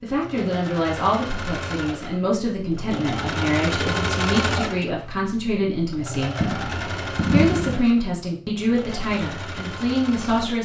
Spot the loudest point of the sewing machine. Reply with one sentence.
The loudest moment of the sewing machine is at 4 seconds.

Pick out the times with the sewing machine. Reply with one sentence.
You can hear the sewing machine from 0.0 to 10.6 s.